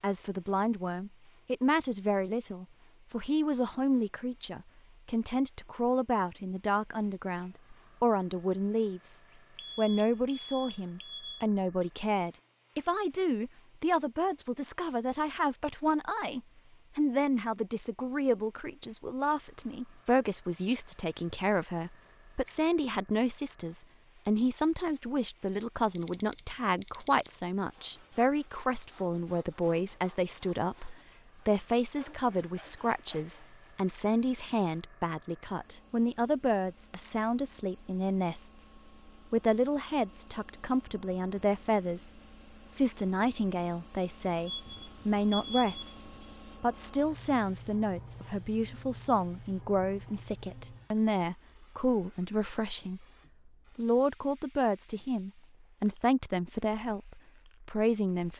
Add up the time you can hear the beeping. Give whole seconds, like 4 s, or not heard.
5 s.